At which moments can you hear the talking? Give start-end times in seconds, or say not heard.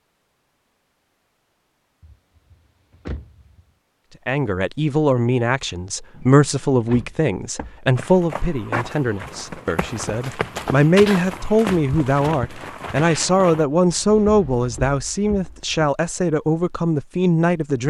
4.2-17.8.